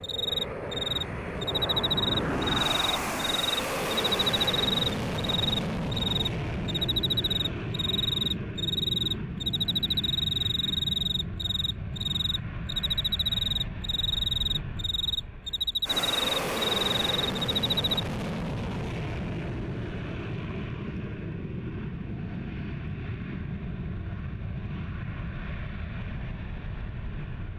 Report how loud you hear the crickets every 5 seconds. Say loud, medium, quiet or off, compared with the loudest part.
loud, loud, loud, loud, off, off.